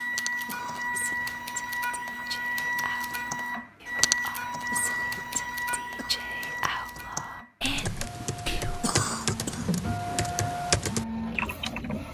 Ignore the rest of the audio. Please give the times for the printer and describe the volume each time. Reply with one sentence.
You can hear the printer from 0.0 to 12.1 s, getting quieter then louder.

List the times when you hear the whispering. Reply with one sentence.
You can hear the whispering from 0.8 to 8.9 s.